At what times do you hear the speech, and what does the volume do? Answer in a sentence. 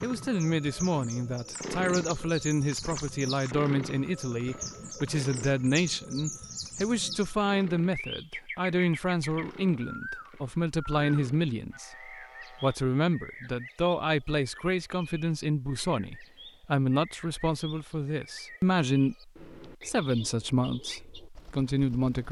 The speech can be heard from 0.0 to 22.2 s, at a steady volume.